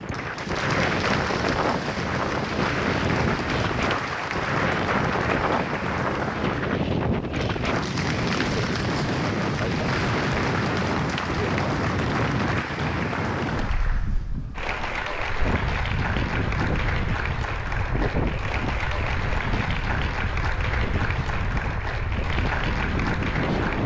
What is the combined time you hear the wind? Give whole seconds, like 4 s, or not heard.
24 s.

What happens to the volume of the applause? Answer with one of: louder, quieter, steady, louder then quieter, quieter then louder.
steady.